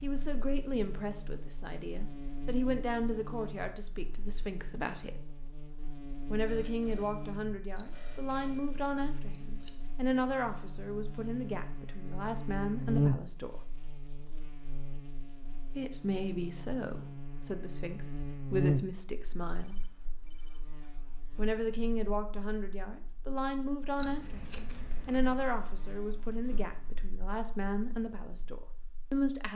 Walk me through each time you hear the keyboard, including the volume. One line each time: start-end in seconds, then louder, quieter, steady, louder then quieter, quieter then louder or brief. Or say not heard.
not heard.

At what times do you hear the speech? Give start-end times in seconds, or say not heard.
0.0-5.2, 6.3-13.6, 15.8-19.9, 21.4-29.4.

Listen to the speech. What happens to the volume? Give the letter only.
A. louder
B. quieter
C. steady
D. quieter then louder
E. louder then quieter
C.